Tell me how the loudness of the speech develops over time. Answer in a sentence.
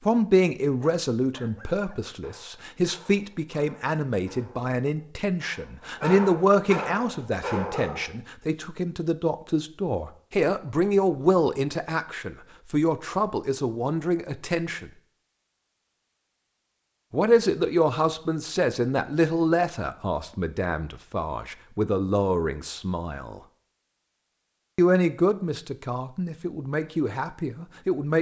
The volume of the speech stays about the same.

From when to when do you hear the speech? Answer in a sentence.
The speech can be heard from 0.1 to 14.9 s, from 17.1 to 23.4 s and from 24.8 to 28.1 s.